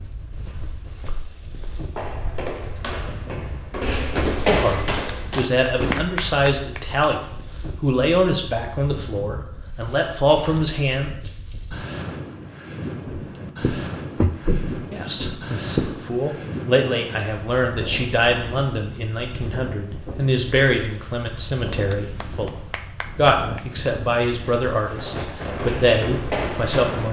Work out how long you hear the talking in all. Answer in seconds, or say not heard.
19 s.